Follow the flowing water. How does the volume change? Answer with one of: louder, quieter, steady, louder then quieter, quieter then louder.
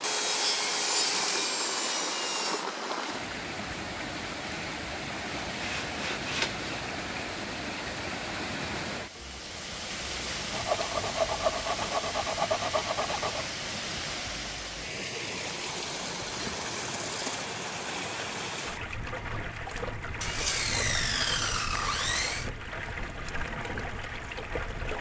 steady.